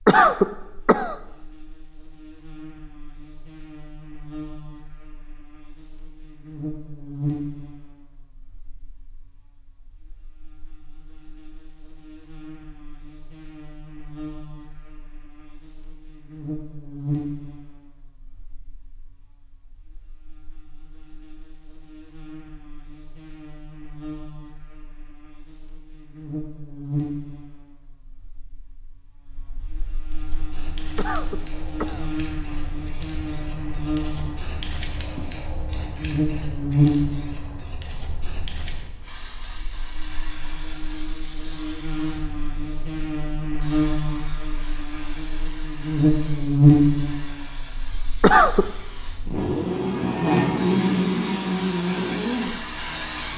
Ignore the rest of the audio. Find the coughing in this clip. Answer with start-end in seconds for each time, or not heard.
0.1-1.1, 30.9-32.0, 48.2-48.6.